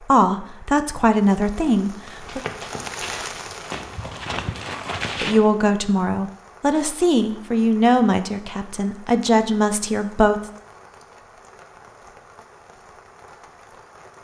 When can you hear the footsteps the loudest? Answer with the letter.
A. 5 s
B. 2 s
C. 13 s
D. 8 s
A.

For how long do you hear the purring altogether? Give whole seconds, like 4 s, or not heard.
not heard.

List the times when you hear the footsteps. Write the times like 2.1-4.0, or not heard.
2.2-5.5.